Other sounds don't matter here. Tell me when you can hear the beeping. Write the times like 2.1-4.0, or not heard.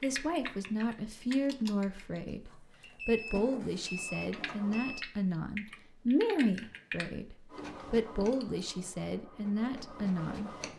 2.7-5.1.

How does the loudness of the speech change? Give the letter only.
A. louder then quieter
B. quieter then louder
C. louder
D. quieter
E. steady
E.